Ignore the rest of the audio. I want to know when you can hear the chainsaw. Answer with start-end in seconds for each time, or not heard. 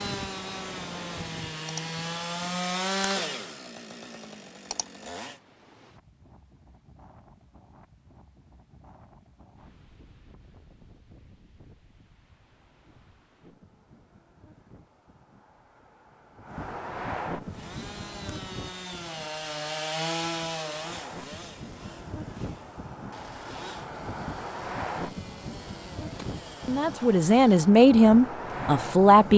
0.0-5.3, 17.4-29.3.